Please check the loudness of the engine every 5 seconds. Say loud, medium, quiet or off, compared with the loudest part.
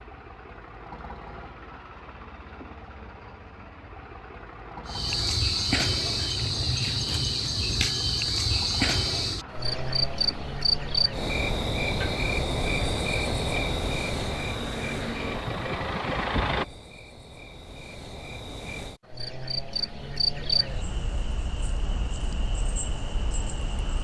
quiet, quiet, medium, loud, off.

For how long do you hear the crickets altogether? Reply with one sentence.
You can hear the crickets for 19 seconds altogether.